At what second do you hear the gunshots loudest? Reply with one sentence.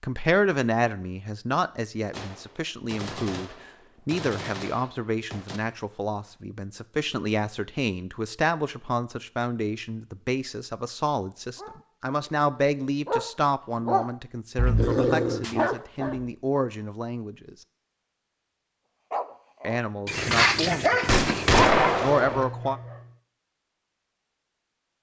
The volume of the gunshots peaks at 22 seconds.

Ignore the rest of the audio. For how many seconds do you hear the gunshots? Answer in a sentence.
The gunshots can be heard for 5 seconds in total.